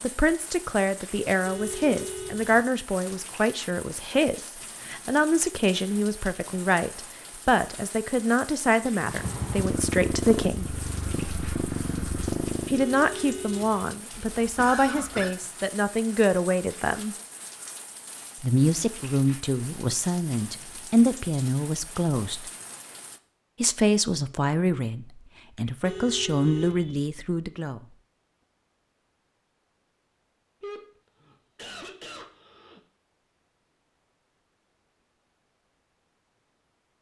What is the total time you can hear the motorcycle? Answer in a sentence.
The motorcycle can be heard for 4 seconds in total.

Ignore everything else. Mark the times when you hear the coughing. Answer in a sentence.
You can hear the coughing from 14.1 to 15.3 s and from 30.6 to 32.8 s.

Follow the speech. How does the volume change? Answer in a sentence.
The volume of the speech stays about the same.